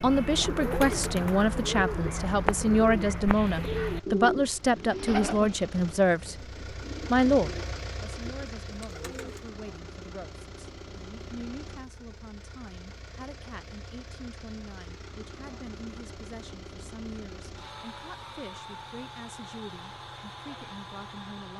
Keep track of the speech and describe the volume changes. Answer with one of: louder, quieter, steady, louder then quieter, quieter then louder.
quieter.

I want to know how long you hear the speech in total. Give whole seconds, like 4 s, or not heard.
21 s.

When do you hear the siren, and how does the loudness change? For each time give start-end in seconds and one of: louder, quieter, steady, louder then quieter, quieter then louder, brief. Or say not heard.
not heard.